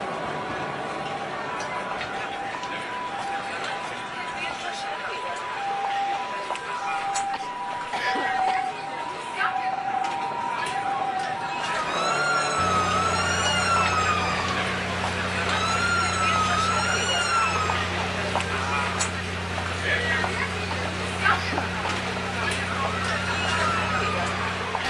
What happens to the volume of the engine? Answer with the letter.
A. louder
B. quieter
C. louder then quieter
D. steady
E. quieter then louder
D.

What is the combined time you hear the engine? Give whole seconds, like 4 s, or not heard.
12 s.